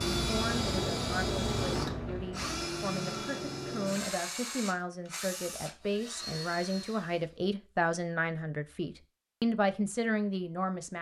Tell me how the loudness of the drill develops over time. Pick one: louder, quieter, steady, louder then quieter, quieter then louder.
quieter.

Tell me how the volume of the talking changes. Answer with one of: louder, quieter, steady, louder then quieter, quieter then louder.
louder.